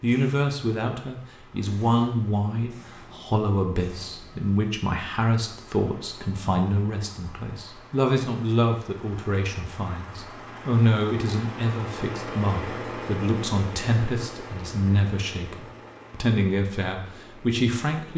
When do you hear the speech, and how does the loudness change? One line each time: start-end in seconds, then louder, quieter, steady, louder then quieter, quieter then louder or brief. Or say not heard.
0.0-18.1 steady.